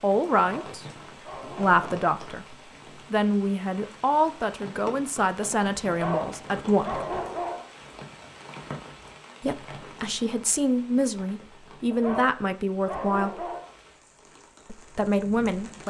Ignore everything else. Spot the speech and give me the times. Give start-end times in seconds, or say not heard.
0.0-0.8, 1.4-7.0, 9.4-13.5, 14.7-15.8.